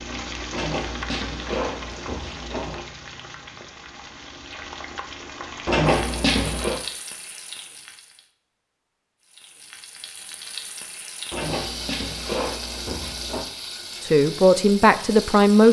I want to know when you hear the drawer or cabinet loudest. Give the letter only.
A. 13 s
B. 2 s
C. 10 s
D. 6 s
D.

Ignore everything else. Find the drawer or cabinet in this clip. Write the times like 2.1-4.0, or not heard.
0.5-2.9, 5.7-6.8, 11.3-13.4.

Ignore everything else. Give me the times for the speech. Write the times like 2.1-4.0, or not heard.
14.0-15.6.